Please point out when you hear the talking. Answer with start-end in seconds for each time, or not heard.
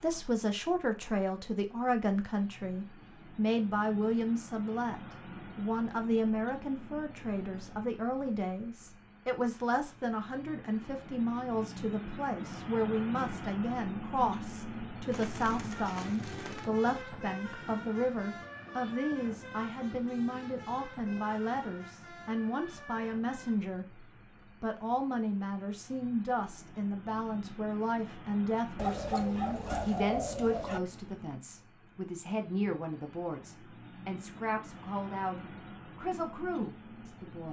0.0-37.4.